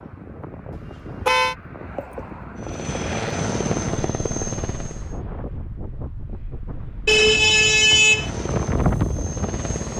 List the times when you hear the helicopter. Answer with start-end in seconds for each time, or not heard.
2.5-5.2, 8.1-9.9.